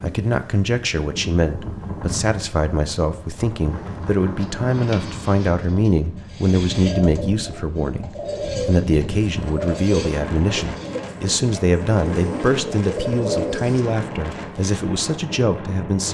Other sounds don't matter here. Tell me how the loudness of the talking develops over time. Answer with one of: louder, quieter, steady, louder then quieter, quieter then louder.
steady.